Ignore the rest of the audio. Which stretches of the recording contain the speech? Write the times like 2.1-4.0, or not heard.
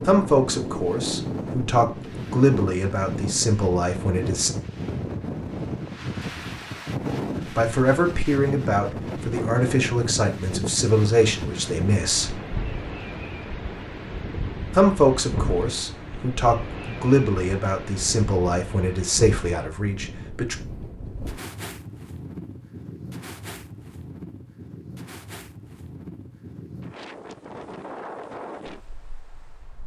0.1-4.5, 7.5-12.3, 14.7-20.6.